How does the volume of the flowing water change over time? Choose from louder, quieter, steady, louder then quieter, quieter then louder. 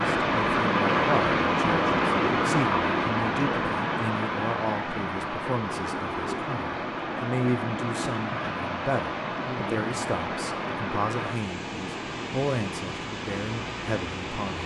quieter.